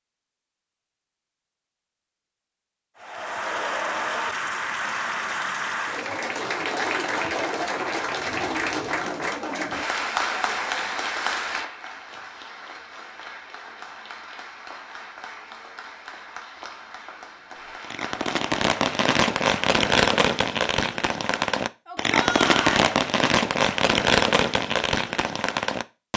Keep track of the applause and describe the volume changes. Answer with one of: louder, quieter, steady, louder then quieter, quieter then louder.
quieter.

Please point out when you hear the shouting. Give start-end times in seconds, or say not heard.
21.9-22.9.